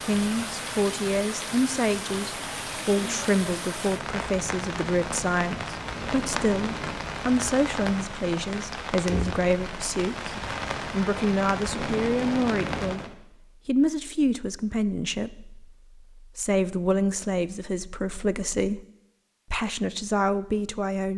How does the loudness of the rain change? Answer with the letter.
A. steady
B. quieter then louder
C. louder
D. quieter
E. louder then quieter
A.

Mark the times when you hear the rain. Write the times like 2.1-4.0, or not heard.
0.0-13.1.